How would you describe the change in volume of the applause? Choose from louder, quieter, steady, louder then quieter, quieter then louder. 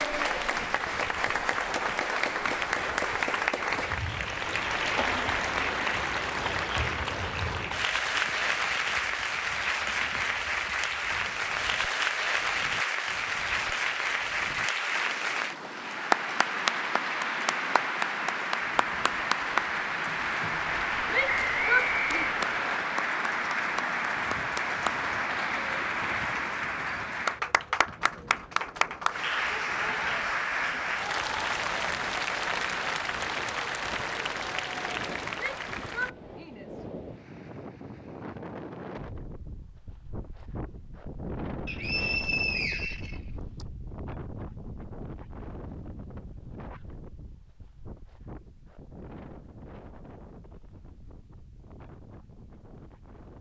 steady.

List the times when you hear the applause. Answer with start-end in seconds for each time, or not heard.
0.0-36.1.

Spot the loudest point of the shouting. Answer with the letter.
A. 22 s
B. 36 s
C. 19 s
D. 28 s
A.